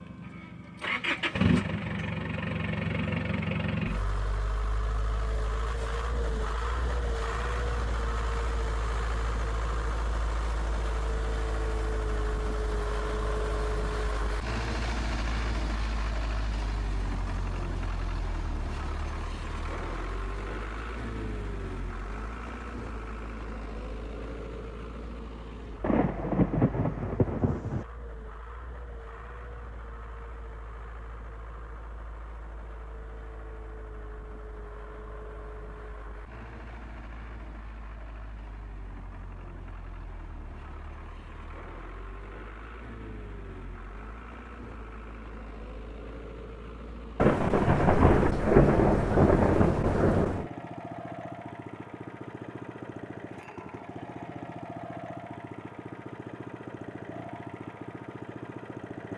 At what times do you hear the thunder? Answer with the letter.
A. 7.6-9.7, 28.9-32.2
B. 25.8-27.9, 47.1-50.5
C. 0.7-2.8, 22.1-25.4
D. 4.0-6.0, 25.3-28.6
B.